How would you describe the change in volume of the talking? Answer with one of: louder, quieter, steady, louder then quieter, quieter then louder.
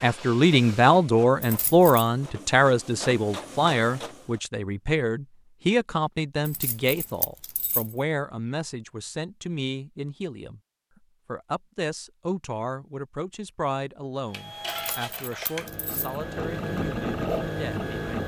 quieter.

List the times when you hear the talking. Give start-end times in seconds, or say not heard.
0.0-10.6, 11.2-18.2.